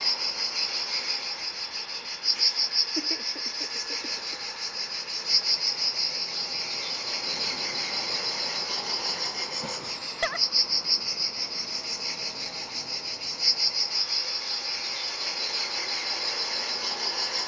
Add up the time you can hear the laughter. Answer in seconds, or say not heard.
3 s.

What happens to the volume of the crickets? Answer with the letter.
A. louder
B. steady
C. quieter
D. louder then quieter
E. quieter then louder
B.